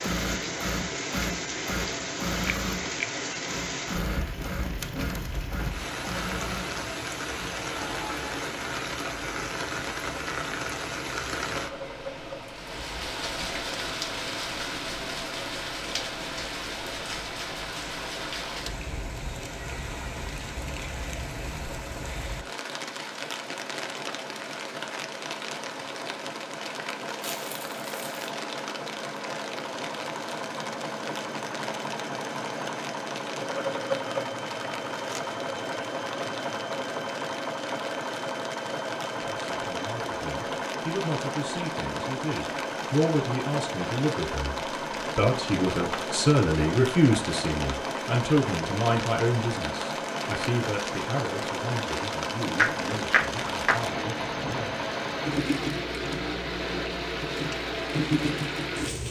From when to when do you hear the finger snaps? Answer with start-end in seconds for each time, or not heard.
2.5-3.1, 52.5-53.8.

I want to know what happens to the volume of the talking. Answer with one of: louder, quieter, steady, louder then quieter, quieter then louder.
louder then quieter.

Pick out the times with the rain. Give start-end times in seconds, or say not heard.
0.0-59.0.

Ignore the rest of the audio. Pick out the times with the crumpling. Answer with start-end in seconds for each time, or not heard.
27.2-28.3.